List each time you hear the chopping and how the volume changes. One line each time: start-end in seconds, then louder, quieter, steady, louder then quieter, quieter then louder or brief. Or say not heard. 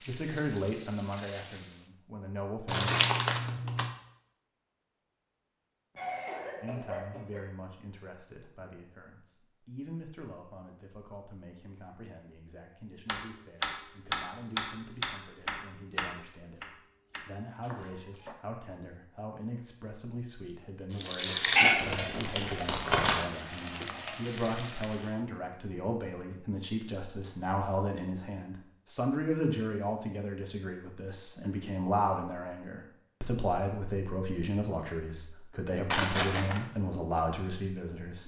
13.1-18.4 quieter.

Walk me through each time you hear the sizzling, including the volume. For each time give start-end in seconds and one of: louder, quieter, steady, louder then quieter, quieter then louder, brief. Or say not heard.
0.0-1.9 brief
20.9-25.1 quieter.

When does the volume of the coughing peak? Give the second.
6 s.